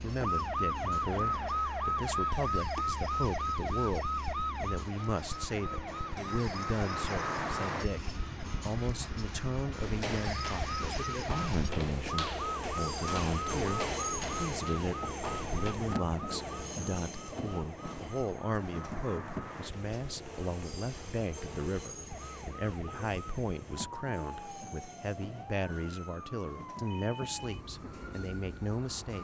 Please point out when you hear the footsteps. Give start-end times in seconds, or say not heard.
9.8-15.8.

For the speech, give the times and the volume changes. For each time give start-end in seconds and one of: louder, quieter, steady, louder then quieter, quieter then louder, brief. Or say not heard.
0.0-29.1 steady.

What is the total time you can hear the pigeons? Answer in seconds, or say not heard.
not heard.